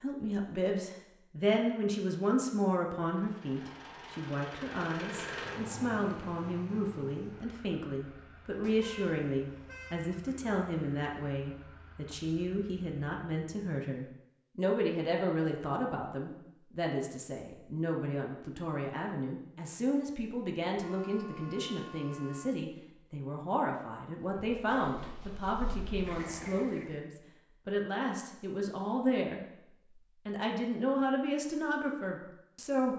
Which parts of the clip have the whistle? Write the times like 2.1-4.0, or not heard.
not heard.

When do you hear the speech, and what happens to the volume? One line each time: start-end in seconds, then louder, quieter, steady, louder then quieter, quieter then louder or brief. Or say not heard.
0.0-32.9 steady.